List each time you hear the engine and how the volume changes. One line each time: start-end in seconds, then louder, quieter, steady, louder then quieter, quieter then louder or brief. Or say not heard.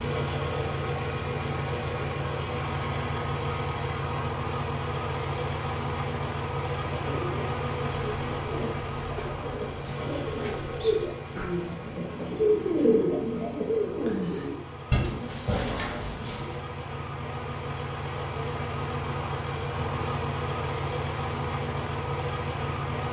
0.0-23.0 quieter then louder.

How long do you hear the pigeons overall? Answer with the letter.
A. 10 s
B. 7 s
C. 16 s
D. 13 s
A.